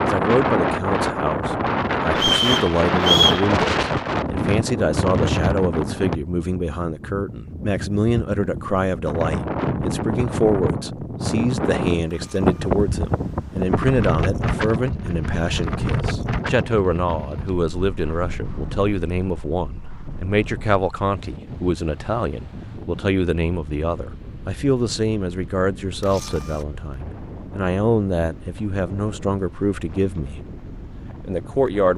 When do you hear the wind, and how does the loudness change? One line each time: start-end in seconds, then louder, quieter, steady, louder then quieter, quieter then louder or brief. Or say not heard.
0.0-31.9 quieter.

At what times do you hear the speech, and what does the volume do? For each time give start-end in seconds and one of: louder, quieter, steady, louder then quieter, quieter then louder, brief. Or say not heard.
0.0-30.4 steady
31.2-31.9 brief.